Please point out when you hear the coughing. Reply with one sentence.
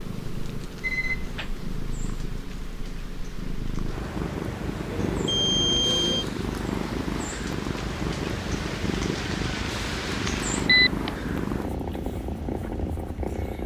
The coughing can't be heard in this clip.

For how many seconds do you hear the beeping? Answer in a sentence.
The beeping can be heard for 3 seconds in total.